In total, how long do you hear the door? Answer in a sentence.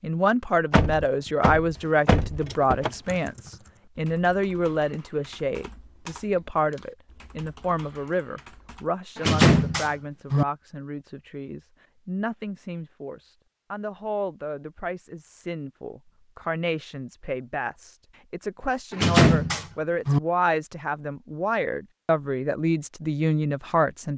The door can be heard for 5 seconds in total.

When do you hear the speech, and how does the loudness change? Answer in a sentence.
The speech can be heard from 0.0 to 24.1 s, getting quieter then louder.